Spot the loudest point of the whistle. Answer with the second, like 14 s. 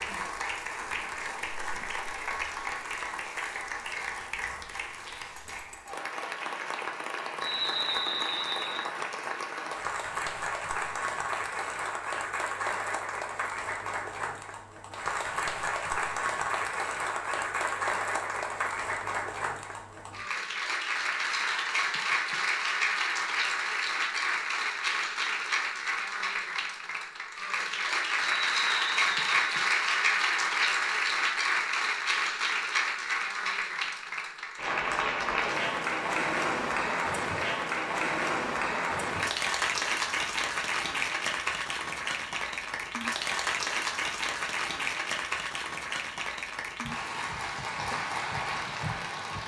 8 s.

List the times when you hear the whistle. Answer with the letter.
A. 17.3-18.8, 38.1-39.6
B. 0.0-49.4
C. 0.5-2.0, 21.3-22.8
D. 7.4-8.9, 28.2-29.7
D.